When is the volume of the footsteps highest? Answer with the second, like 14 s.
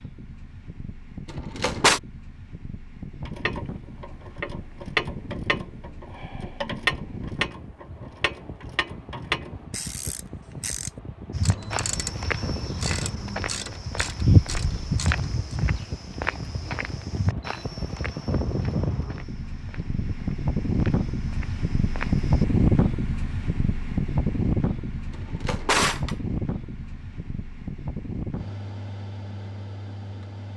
14 s.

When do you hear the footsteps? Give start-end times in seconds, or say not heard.
11.3-22.4.